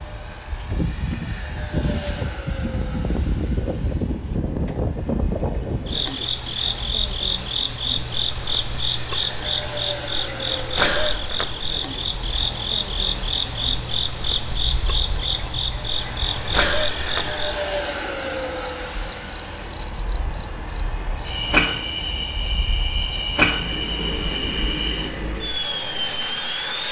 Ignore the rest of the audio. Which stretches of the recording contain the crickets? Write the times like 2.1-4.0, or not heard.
0.0-26.8.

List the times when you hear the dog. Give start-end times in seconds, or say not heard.
not heard.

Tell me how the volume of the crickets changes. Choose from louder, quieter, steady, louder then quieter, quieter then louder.
steady.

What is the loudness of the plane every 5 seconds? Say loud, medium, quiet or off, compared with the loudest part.
medium, medium, medium, loud, medium, loud.